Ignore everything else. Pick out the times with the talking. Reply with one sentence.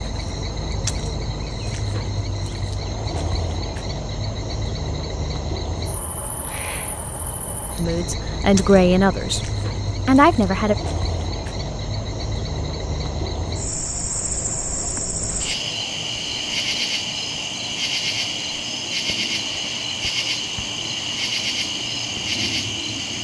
The talking can be heard from 7.8 to 10.8 s.